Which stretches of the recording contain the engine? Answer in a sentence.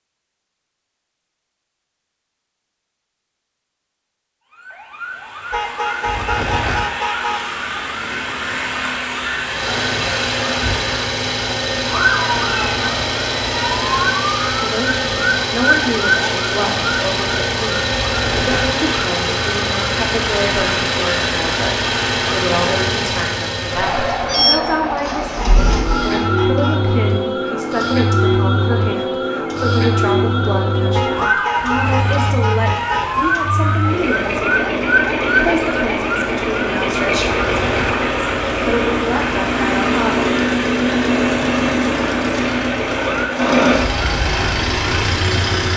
The engine can be heard from 9.4 to 45.7 s.